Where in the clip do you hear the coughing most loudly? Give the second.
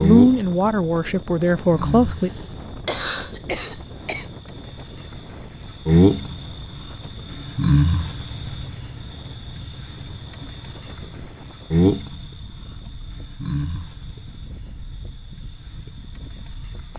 3 s.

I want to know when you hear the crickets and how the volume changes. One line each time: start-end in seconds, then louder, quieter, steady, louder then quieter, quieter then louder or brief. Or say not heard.
0.0-16.9 louder then quieter.